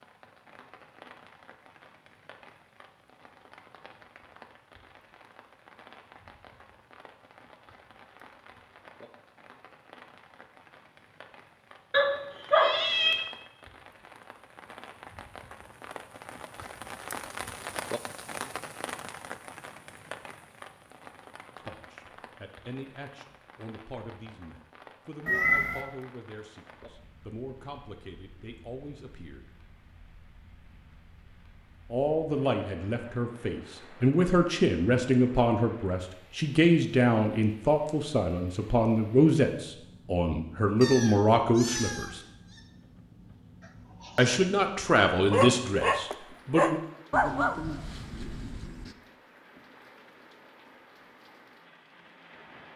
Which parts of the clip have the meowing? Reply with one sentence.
The meowing can be heard from 11.9 to 13.2 s, from 25.2 to 25.9 s and from 40.8 to 42.6 s.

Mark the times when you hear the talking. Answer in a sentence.
You can hear the talking from 21.6 to 29.4 s, from 31.9 to 42.2 s and from 44.1 to 46.8 s.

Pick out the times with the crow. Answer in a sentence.
The crow can't be heard in this clip.